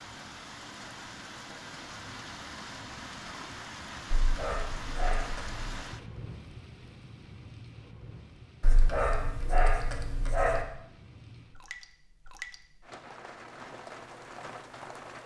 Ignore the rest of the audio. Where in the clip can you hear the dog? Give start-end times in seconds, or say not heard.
4.1-5.8, 8.6-10.7.